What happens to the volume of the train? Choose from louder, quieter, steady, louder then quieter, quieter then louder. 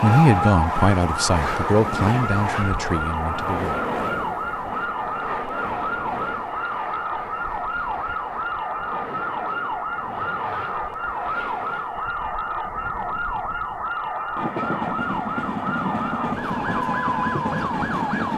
quieter then louder.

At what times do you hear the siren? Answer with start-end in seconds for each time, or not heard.
0.0-18.3.